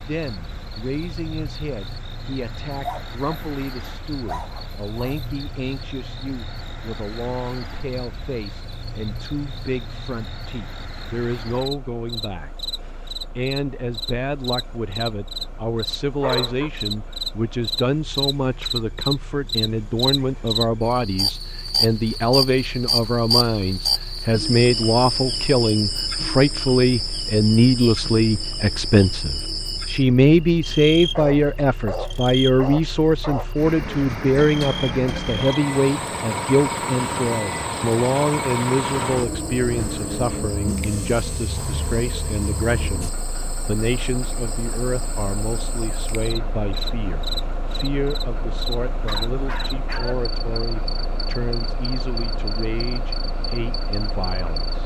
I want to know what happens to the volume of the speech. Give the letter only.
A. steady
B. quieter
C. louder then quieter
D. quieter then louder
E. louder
C.